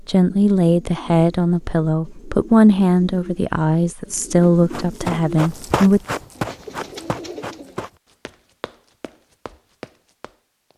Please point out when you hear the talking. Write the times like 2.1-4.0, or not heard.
0.1-6.0.